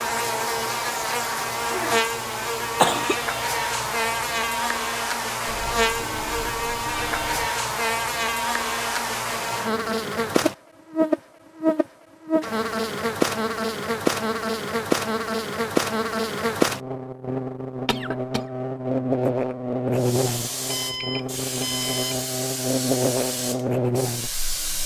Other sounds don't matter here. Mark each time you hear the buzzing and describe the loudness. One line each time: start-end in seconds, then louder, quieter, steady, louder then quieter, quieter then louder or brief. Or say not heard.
0.0-24.8 steady.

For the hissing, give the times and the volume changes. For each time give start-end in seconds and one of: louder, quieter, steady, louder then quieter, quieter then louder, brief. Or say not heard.
19.9-24.8 steady.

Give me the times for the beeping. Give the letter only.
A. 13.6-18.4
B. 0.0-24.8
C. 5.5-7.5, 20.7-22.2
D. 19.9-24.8
C.